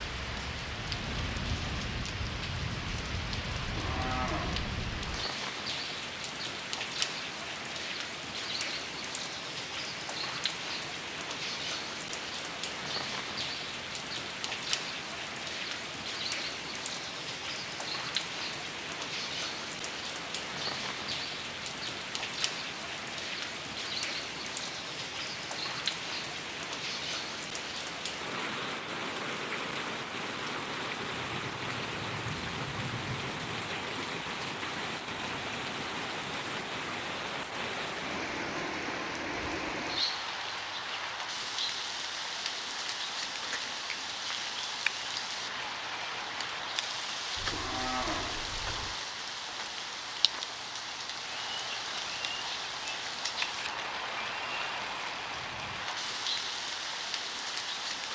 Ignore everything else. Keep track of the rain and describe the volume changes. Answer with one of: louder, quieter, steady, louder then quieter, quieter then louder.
steady.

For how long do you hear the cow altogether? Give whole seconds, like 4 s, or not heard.
3 s.